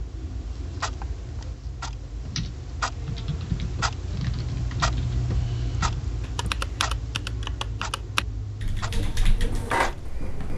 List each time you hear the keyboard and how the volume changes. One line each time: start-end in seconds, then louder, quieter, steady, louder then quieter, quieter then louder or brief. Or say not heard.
2.3-9.7 steady.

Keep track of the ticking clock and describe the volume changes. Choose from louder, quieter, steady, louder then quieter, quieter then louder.
louder then quieter.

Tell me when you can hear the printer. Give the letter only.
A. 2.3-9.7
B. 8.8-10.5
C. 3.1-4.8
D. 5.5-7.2
B.